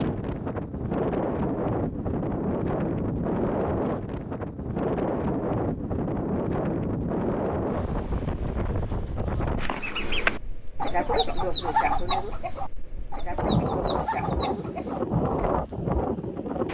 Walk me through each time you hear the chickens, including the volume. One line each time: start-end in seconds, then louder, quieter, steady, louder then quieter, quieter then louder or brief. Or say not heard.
9.6-15.6 quieter.